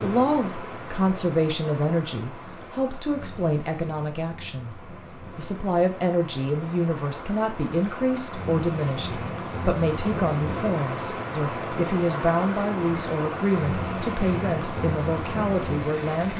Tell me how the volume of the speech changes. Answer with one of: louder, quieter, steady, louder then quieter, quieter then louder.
steady.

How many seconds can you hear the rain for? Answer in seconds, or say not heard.
16 s.